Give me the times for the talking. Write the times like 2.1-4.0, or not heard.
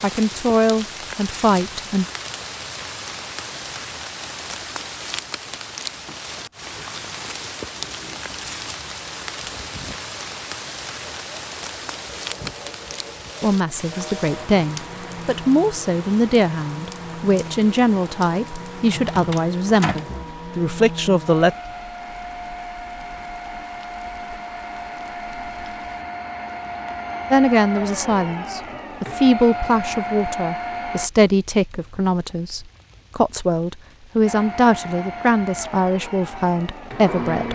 0.0-2.0, 13.4-21.6, 27.3-37.5.